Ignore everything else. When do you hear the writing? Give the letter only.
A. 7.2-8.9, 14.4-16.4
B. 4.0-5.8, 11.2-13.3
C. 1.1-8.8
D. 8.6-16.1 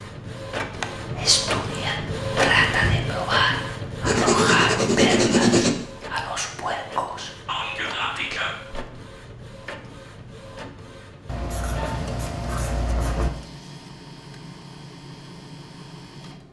B.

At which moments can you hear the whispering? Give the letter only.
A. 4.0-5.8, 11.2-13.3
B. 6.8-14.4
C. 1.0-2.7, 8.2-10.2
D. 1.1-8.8
D.